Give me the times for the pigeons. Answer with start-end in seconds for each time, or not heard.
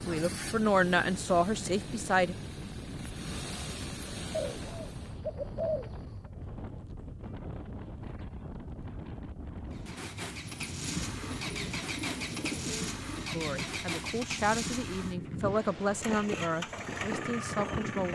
4.3-6.2, 10.4-13.2.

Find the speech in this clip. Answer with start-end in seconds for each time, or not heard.
0.1-2.4, 13.3-18.0.